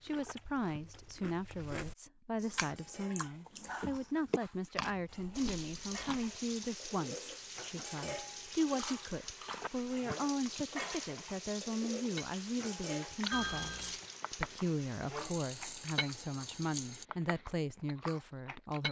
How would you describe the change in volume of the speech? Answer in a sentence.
The loudness of the speech stays about the same.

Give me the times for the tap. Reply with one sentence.
You can hear the tap from 5.3 to 17.1 s.